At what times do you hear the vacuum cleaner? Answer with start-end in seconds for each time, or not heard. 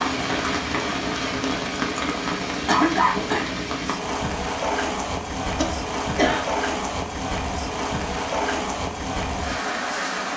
not heard.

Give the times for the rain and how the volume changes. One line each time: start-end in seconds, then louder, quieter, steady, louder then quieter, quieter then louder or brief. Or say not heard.
0.0-10.3 steady.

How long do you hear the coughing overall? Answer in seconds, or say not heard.
2 s.